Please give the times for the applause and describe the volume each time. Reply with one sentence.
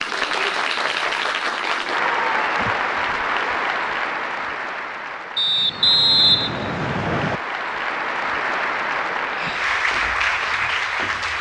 The applause can be heard from 0.0 to 11.3 s, getting quieter then louder.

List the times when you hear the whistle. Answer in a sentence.
The whistle can be heard from 5.3 to 7.4 s.